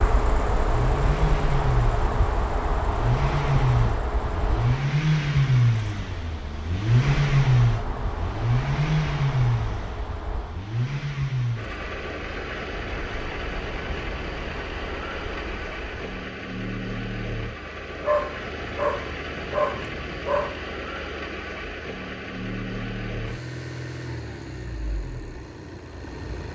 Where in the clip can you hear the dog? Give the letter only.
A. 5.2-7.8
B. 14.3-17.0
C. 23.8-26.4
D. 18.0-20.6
D.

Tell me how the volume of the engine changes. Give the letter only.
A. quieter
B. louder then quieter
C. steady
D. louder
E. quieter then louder
A.